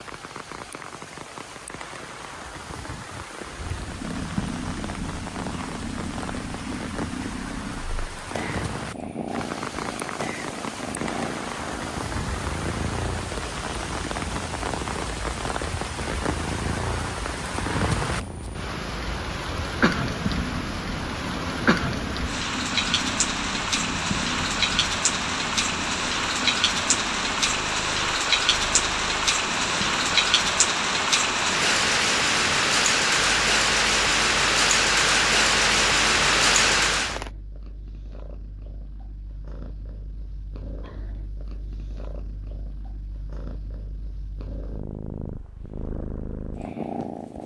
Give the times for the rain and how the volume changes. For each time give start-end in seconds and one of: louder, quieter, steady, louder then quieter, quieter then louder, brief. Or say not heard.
0.0-37.3 louder.